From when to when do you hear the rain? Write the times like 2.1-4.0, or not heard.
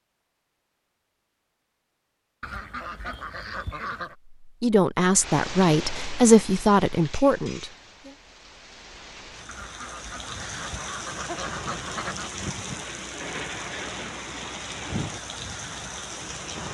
5.2-16.7.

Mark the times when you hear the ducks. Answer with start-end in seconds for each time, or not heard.
2.4-4.2, 9.4-12.3.